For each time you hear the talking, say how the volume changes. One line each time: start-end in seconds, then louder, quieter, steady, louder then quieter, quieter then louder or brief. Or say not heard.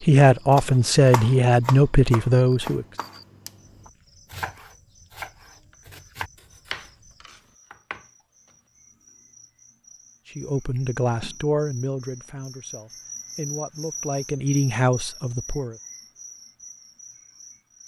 0.0-2.9 brief
10.3-15.8 quieter then louder.